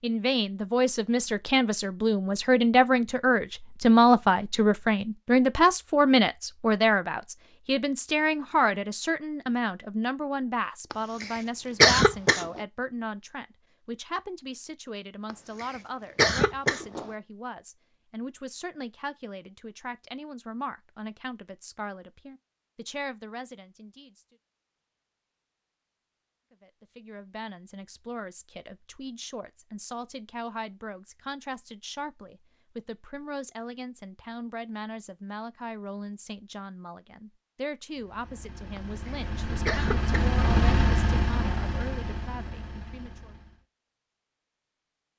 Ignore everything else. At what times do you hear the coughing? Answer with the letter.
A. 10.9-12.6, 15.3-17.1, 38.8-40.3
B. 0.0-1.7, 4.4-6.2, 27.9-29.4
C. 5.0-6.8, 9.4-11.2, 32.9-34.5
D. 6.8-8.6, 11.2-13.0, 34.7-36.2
A.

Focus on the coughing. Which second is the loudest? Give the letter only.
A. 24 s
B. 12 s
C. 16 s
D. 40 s
B.